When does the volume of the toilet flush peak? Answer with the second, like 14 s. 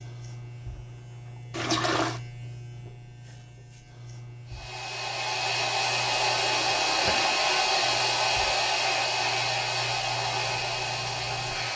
2 s.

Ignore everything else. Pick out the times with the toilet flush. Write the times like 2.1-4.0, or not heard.
1.5-2.2, 6.7-7.4.